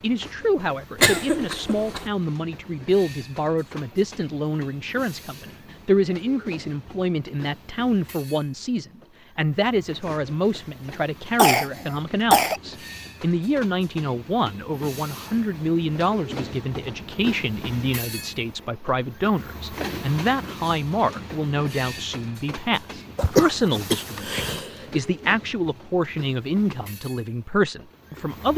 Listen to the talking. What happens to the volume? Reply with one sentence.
The volume of the talking stays about the same.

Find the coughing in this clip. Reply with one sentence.
The coughing can be heard from 0.9 to 2.0 s, from 11.3 to 12.6 s and from 23.1 to 25.0 s.